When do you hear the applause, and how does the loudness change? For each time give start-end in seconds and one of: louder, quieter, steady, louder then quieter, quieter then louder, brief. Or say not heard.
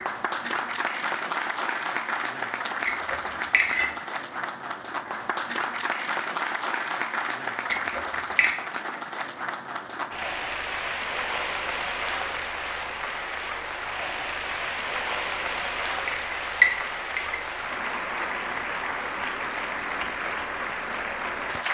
0.0-21.7 steady.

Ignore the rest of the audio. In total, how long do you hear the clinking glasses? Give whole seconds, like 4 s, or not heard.
4 s.